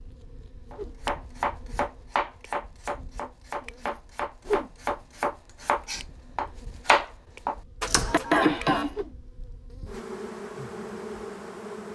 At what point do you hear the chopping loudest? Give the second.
7 s.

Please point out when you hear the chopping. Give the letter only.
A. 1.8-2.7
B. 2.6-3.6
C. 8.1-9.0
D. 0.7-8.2
D.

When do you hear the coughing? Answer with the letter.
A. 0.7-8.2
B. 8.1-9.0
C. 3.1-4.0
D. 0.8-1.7
B.